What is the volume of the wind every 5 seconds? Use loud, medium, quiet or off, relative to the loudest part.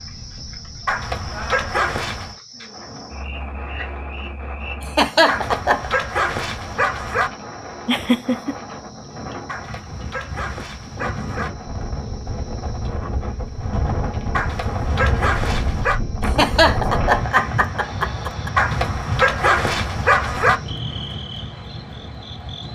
medium, medium, loud, loud, medium.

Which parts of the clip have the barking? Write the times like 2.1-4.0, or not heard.
0.8-2.4, 5.2-7.3, 9.4-11.5, 14.3-16.0, 18.6-20.6.